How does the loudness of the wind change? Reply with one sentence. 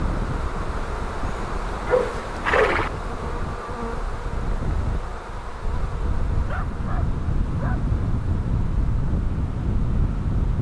The loudness of the wind goes up.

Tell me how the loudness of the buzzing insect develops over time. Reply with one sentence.
The loudness of the buzzing insect goes down.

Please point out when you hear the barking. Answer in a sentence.
You can hear the barking from 1.9 to 2.9 s and from 6.3 to 7.9 s.